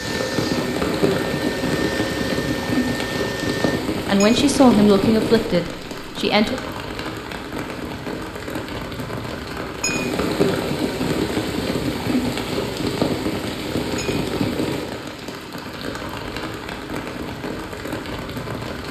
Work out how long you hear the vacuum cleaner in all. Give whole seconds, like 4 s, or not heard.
4 s.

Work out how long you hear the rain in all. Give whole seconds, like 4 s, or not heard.
19 s.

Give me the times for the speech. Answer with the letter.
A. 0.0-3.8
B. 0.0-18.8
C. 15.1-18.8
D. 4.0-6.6
D.